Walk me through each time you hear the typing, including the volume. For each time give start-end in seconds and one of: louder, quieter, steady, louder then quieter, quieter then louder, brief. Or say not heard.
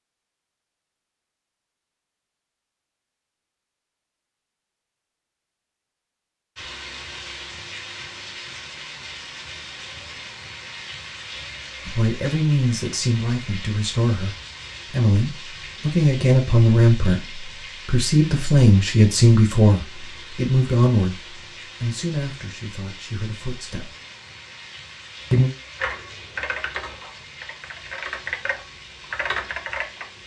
25.8-30.1 quieter then louder.